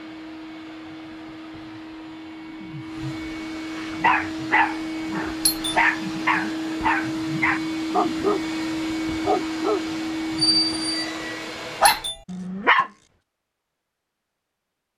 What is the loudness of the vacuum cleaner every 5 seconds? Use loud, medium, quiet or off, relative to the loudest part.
medium, loud, loud.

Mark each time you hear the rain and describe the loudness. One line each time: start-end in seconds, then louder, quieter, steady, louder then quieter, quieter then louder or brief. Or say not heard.
not heard.